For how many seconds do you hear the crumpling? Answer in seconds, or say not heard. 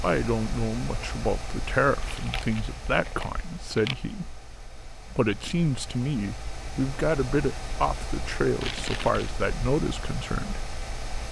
3 s.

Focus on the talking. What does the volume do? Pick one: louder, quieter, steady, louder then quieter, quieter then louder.
steady.